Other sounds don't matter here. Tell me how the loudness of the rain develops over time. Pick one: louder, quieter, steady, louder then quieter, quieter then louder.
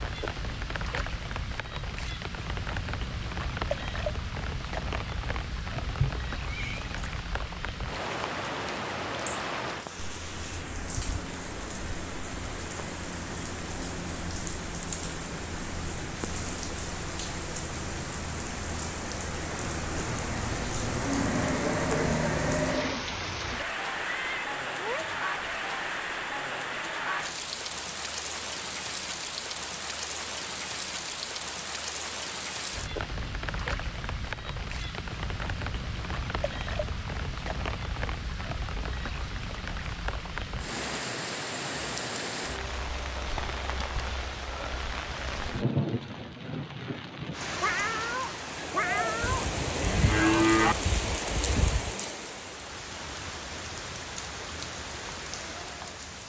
steady.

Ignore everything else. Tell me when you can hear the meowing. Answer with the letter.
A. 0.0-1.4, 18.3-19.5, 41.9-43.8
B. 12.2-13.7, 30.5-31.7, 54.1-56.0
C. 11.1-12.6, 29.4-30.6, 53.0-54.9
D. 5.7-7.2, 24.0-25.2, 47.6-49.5
D.